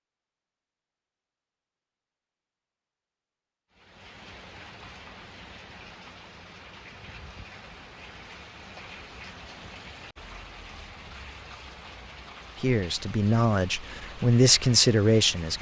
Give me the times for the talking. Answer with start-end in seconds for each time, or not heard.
12.6-15.5.